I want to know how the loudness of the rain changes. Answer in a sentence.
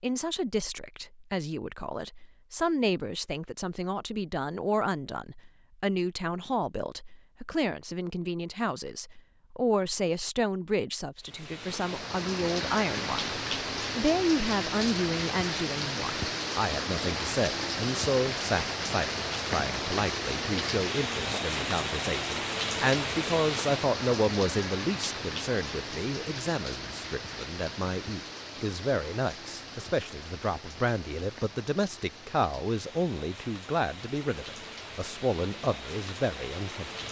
The volume of the rain goes down.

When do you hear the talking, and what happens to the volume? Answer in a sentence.
The talking can be heard from 0.0 to 37.0 s, at a steady volume.